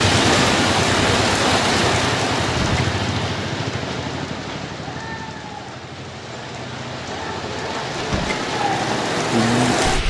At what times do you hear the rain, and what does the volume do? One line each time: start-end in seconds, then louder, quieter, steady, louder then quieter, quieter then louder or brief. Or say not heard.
0.0-10.0 quieter then louder.